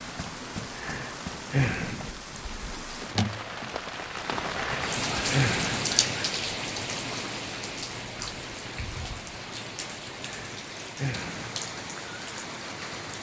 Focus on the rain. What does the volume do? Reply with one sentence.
The volume of the rain goes up, then down.